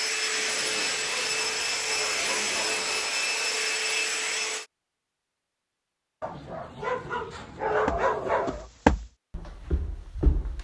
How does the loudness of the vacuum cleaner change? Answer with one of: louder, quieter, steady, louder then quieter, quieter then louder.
steady.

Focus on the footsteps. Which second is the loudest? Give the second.
9 s.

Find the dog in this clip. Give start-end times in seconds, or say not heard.
0.5-3.0, 6.2-8.7.